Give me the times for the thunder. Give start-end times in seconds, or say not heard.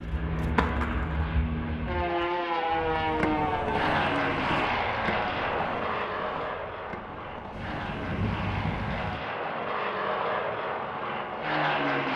7.5-9.2.